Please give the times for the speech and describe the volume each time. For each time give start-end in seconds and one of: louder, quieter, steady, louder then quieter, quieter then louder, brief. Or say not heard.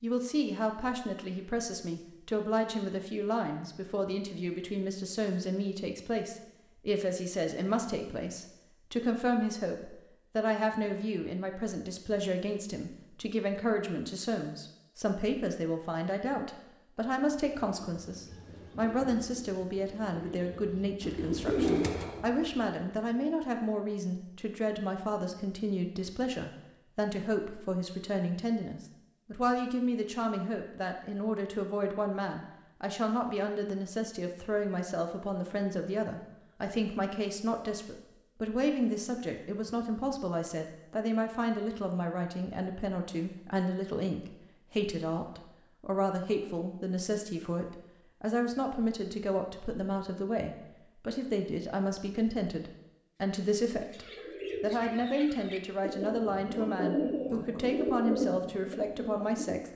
0.0-59.7 steady.